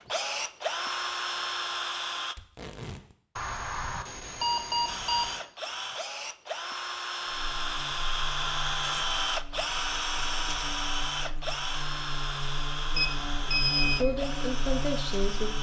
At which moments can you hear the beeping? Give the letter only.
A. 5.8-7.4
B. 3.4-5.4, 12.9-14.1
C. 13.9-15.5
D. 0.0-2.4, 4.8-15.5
B.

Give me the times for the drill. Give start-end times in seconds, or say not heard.
0.0-2.4, 4.8-15.5.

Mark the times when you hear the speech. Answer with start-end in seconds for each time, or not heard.
13.9-15.5.